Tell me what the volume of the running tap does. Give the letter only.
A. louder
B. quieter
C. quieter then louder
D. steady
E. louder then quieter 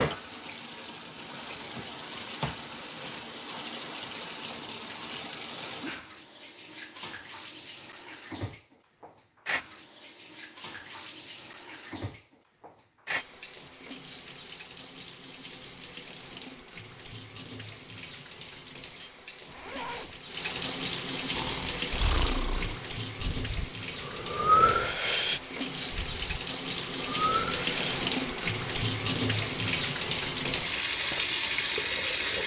A.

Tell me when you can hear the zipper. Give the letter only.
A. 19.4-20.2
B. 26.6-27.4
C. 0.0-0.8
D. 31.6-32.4
A.